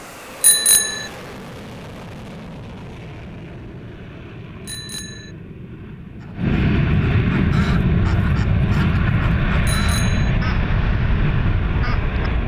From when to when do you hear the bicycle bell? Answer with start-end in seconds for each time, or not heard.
0.4-1.1, 4.7-5.3, 9.7-10.3.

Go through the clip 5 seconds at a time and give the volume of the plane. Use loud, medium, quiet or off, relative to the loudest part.
quiet, loud, loud.